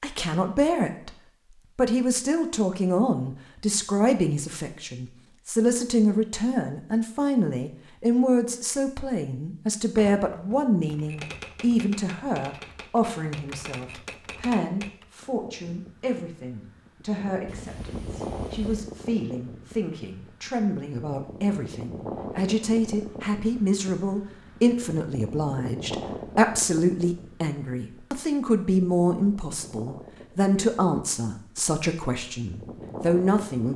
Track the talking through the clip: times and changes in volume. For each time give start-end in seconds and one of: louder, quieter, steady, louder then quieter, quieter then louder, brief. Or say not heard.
0.0-1.1 brief
1.8-33.7 quieter then louder.